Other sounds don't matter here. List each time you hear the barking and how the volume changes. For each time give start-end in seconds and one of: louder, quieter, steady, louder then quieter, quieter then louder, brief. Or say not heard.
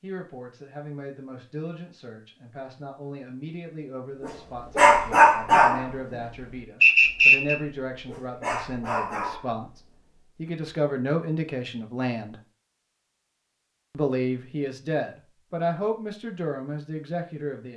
4.2-10.0 quieter then louder.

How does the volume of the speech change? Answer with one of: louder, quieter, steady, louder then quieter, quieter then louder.
louder.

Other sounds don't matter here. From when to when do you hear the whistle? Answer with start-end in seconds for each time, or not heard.
6.8-7.5.